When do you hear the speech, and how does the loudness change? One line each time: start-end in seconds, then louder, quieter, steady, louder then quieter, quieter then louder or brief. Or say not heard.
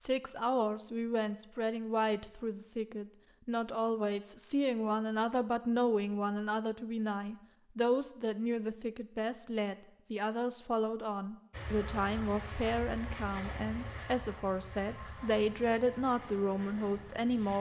0.0-17.5 steady.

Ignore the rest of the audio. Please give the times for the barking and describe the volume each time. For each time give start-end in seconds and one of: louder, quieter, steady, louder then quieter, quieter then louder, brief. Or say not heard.
not heard.